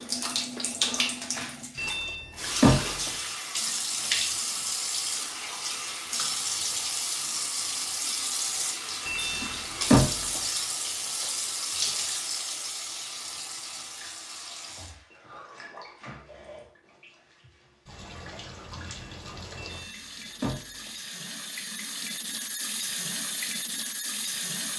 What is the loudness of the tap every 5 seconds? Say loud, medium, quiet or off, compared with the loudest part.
loud, loud, loud, quiet, medium.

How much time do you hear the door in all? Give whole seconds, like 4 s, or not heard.
4 s.